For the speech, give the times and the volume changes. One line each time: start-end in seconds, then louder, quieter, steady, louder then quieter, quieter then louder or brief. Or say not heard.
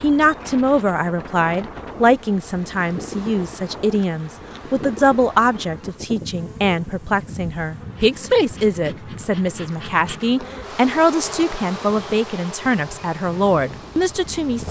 0.0-14.6 steady.